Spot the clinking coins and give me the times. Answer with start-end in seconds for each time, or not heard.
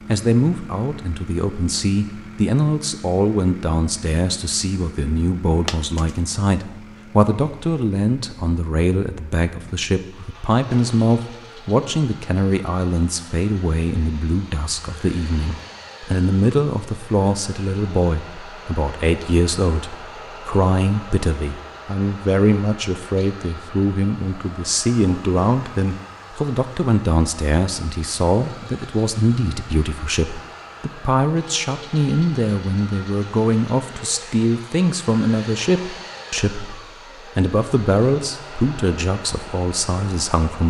5.7-6.2.